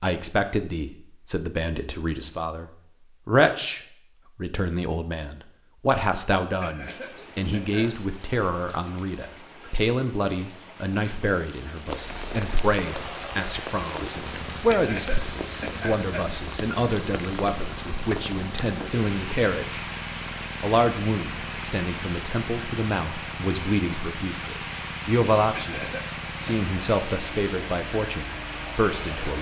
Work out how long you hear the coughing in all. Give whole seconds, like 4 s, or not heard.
4 s.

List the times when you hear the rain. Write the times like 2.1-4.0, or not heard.
6.8-29.3.